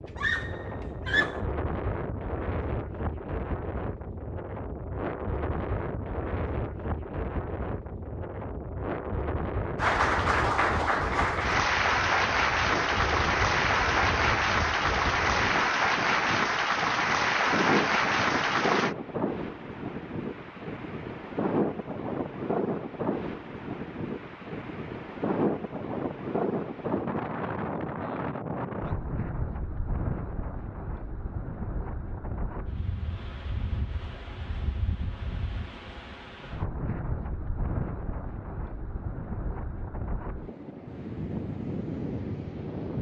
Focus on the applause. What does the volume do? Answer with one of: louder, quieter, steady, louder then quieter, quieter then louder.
steady.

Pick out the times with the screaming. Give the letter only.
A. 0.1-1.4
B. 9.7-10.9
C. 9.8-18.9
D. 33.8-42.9
A.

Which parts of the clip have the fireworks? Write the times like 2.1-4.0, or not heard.
not heard.